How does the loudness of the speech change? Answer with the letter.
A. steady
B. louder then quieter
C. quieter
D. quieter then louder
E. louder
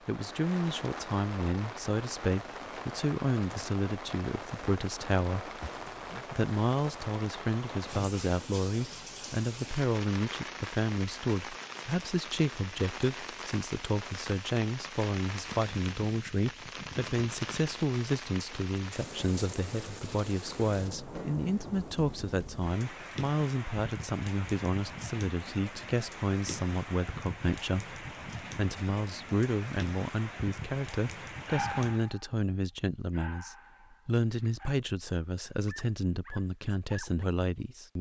A.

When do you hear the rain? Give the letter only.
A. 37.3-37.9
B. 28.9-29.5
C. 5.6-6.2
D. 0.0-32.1
D.